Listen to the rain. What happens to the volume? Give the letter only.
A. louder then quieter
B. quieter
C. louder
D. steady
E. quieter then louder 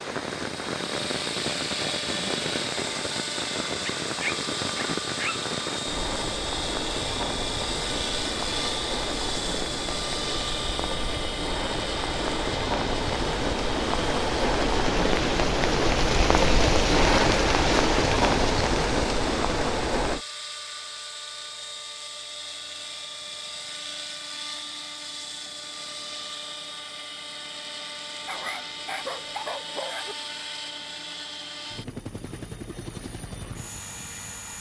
C.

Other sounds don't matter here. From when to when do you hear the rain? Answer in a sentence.
The rain can be heard from 0.0 to 20.2 s.